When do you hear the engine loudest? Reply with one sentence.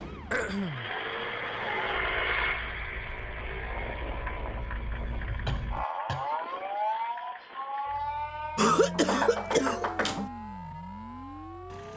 The volume of the engine peaks at 2 seconds.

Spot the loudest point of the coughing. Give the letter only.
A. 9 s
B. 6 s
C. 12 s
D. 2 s
A.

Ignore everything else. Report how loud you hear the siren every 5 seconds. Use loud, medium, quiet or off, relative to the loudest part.
medium, loud, medium.